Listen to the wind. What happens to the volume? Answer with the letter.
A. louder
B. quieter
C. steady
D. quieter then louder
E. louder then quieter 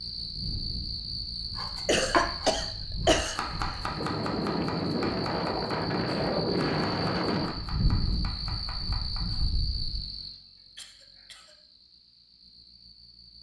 E.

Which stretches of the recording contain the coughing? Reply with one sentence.
You can hear the coughing from 1.9 to 3.9 s and from 10.8 to 11.6 s.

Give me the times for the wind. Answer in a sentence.
You can hear the wind from 0.1 to 10.1 s.